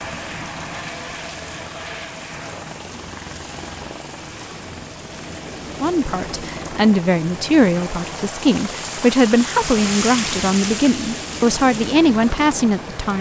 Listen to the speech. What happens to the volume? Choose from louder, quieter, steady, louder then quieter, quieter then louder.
steady.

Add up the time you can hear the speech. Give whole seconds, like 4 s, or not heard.
7 s.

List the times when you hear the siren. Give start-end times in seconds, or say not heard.
not heard.